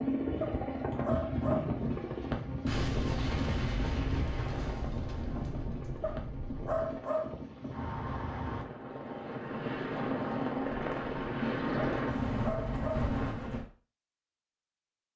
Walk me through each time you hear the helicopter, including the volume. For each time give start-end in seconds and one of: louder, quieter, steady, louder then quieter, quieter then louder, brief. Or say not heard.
0.0-13.7 quieter then louder.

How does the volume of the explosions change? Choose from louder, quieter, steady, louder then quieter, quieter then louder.
quieter.